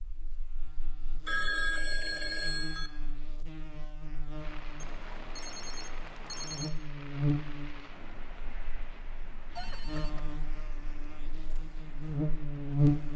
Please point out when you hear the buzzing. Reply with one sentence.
You can hear the buzzing from 0.0 to 13.1 s.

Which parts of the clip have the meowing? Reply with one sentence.
You can't hear the meowing here.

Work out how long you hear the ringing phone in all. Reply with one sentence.
You can hear the ringing phone for 4 seconds altogether.